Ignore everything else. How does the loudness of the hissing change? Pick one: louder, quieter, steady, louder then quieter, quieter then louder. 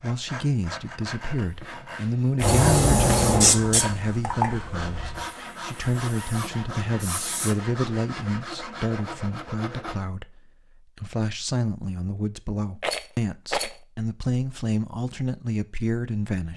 quieter then louder.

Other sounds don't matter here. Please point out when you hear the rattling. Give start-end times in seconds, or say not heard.
2.4-4.0, 12.8-13.8.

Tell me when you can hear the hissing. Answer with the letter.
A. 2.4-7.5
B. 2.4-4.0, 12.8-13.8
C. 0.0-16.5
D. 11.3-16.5
A.